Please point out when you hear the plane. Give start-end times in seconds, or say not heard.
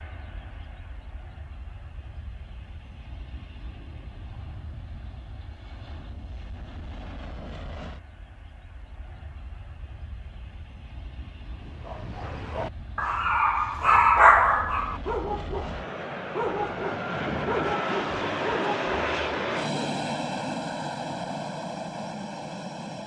0.0-23.0.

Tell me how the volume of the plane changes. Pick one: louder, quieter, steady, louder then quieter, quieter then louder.
louder.